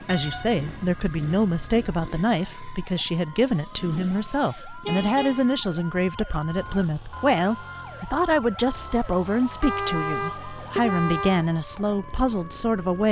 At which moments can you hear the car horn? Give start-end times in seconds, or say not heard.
0.1-1.9, 4.8-5.4, 9.6-11.4.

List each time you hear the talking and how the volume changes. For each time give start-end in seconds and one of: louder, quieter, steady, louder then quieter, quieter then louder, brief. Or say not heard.
0.0-13.0 steady.